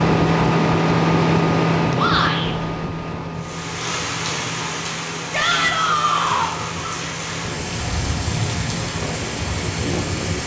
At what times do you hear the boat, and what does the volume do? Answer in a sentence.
The boat can be heard from 0.0 to 10.4 s, getting quieter.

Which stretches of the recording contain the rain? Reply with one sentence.
You can hear the rain from 3.4 to 10.4 s.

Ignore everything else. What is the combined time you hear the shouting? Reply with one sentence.
The shouting can be heard for 2 seconds in total.